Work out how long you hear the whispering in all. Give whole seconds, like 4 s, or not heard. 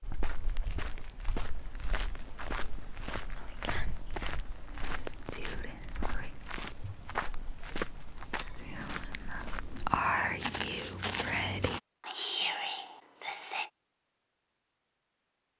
8 s.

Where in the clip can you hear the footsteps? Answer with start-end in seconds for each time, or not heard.
0.0-11.8.